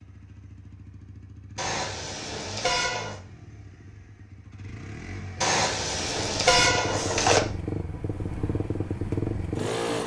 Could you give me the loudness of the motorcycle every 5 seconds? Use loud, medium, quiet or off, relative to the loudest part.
quiet, loud.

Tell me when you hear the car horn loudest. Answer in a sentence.
The loudest moment of the car horn is at 7 seconds.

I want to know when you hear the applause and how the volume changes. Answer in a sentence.
The applause can't be heard in this clip.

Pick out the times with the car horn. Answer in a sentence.
The car horn can be heard from 1.6 to 3.2 s and from 5.4 to 7.4 s.